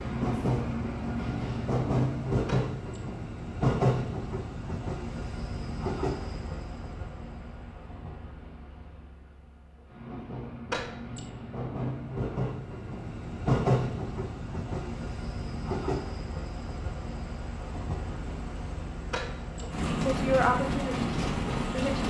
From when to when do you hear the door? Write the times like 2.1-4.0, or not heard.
2.5-3.1, 10.7-11.3, 19.1-19.8.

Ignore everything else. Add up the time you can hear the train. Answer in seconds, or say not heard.
22 s.